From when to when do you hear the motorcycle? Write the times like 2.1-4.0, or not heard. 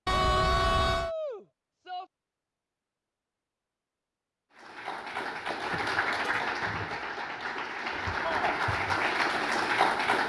not heard.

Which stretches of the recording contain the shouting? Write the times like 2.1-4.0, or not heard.
0.1-2.0, 8.2-8.6.